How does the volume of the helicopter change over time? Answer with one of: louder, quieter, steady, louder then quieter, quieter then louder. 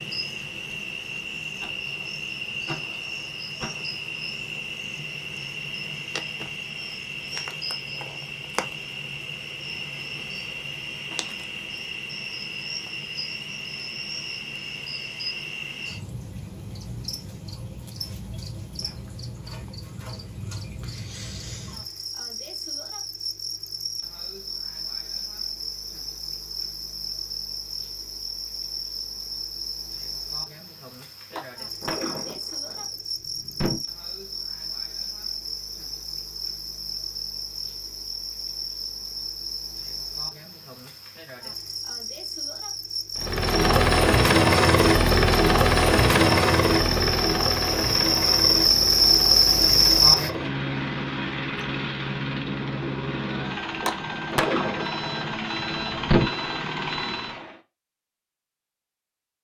quieter.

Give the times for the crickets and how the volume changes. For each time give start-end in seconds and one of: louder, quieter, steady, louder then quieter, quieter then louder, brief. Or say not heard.
0.0-50.3 louder.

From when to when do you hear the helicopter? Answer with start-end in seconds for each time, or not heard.
43.1-57.6.